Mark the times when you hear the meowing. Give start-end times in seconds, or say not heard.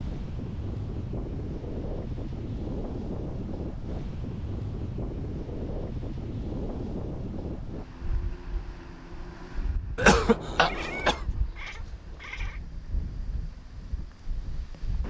10.6-12.6.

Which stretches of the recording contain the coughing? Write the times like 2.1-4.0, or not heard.
9.9-11.2.